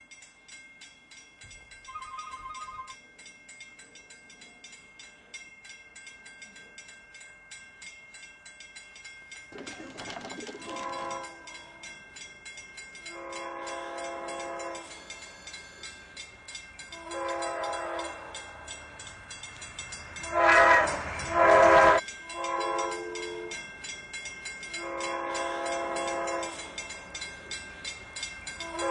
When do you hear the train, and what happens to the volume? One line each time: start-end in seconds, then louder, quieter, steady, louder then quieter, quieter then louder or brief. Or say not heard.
0.0-28.8 louder then quieter.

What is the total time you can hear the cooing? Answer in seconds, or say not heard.
2 s.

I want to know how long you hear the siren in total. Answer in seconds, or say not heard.
not heard.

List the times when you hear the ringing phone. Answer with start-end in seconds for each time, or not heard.
1.4-3.0, 14.9-16.1, 22.6-23.6.